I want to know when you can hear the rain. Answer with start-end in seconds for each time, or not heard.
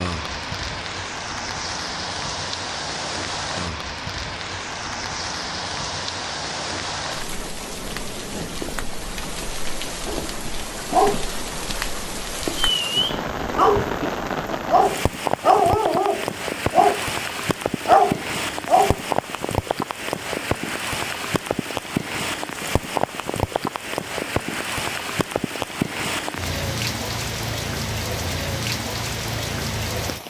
0.0-30.2.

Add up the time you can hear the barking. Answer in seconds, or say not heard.
8 s.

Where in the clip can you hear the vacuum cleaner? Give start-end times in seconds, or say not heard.
not heard.